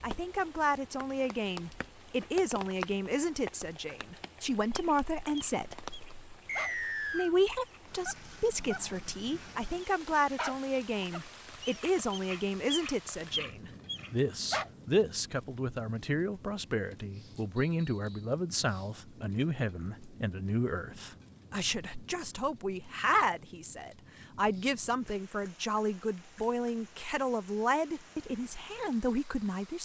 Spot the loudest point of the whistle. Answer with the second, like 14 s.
7 s.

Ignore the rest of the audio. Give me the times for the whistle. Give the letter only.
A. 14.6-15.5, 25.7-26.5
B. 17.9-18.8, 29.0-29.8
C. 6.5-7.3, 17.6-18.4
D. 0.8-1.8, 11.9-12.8
C.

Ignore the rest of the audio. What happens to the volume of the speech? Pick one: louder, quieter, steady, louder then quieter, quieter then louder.
steady.